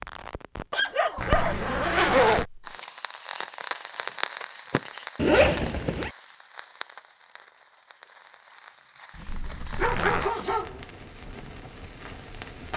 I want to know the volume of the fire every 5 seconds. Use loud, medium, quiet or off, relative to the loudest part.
loud, medium, medium.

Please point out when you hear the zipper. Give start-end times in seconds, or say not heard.
1.1-2.5, 5.2-6.1, 9.2-10.3.